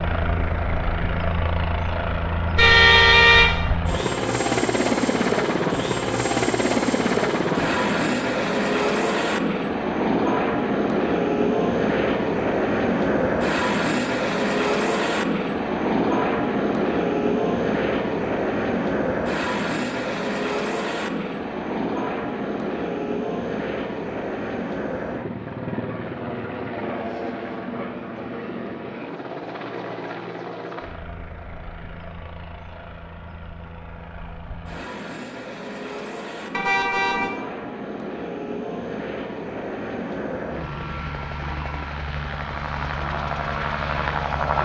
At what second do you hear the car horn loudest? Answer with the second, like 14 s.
3 s.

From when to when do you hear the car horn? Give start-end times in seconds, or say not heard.
2.5-3.5, 36.5-37.3.